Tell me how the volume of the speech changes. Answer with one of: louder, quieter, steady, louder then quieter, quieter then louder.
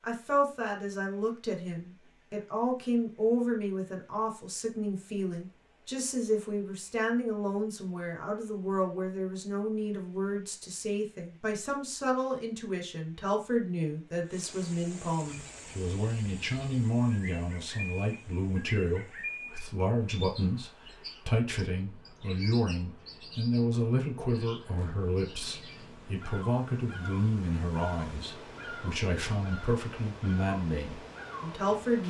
steady.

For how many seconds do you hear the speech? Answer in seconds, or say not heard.
32 s.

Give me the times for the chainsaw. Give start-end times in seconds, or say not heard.
not heard.